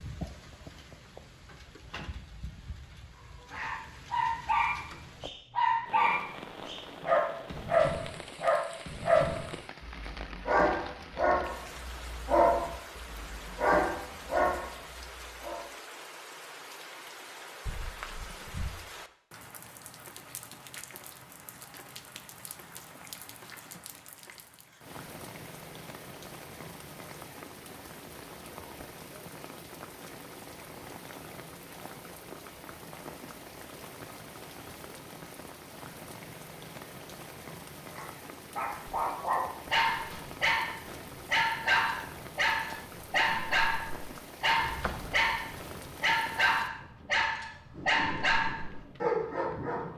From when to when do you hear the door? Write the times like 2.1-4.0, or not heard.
1.4-2.2, 17.6-18.7, 44.5-45.9.